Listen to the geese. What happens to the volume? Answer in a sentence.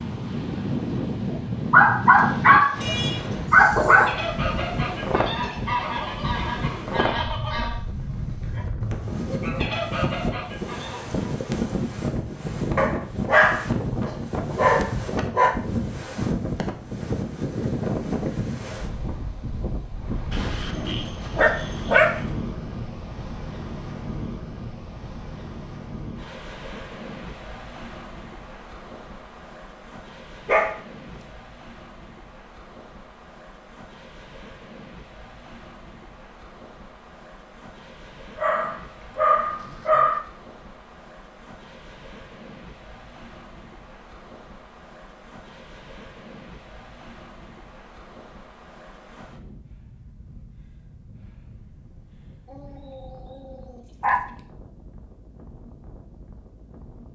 The loudness of the geese goes down, then up.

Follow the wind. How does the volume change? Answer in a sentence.
The loudness of the wind goes down.